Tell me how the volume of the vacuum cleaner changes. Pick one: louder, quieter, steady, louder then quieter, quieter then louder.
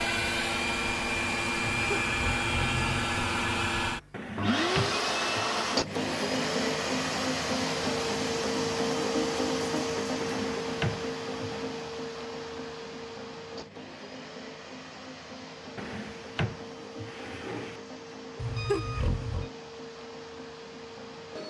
quieter.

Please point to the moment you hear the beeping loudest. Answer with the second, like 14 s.
19 s.